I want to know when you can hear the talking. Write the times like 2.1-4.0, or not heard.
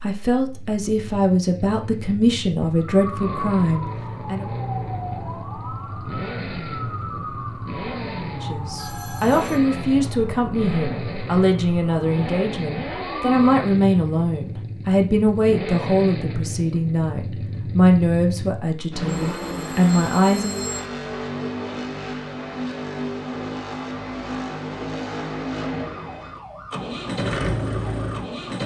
0.0-4.5, 8.2-20.6.